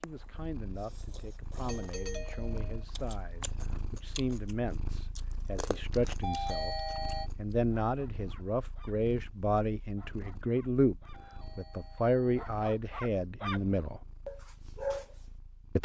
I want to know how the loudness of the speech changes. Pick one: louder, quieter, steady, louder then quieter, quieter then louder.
louder.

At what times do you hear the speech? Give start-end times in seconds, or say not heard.
0.0-6.8, 7.3-14.0.